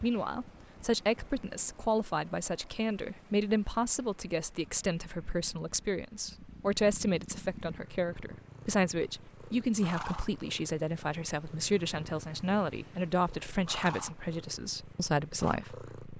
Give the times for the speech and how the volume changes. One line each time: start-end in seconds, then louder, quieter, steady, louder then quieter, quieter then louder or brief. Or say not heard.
0.0-15.9 steady.